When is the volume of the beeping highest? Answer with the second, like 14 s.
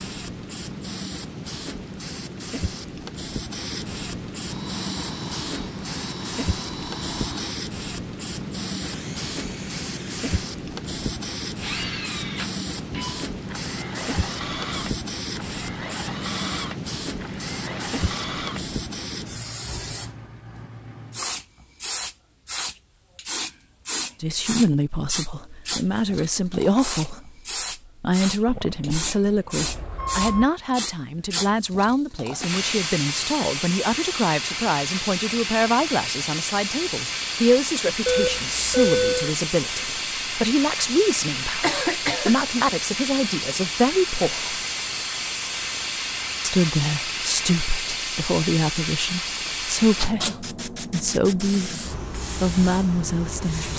39 s.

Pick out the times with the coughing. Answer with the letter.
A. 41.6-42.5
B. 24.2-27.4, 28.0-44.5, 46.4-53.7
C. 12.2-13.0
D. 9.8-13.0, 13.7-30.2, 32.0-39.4
A.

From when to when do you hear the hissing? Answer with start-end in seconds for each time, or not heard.
0.0-53.7.